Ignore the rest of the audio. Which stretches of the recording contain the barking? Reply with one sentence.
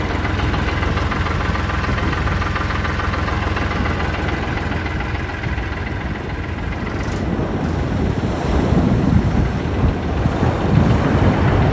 The barking can't be heard in this clip.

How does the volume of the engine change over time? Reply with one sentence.
The volume of the engine goes down.